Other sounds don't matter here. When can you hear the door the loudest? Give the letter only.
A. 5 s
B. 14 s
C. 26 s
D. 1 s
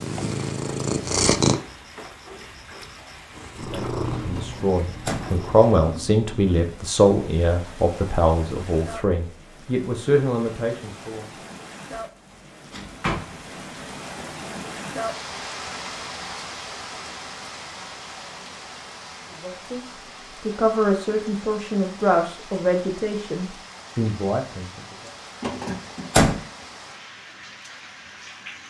C.